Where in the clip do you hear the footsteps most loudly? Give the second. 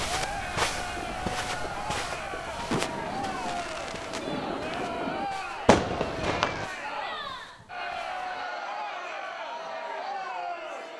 1 s.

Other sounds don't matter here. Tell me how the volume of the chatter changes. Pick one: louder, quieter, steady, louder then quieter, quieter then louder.
steady.